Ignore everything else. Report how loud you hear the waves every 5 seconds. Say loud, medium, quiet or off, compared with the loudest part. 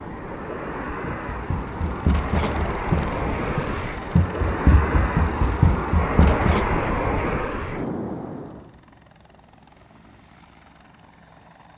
loud, loud, off.